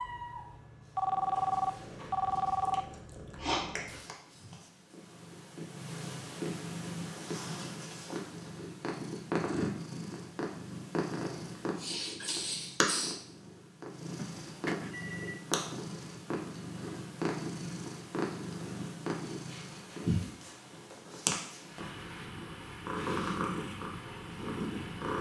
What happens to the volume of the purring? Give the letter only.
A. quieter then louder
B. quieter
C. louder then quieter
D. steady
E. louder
E.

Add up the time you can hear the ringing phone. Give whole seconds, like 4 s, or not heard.
3 s.